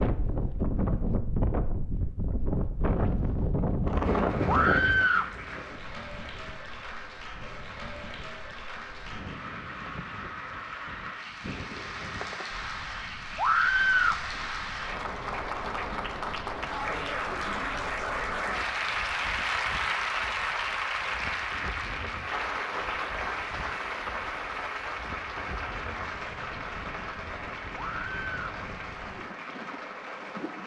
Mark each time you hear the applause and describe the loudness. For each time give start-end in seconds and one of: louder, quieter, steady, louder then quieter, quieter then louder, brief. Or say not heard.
4.0-30.6 louder then quieter.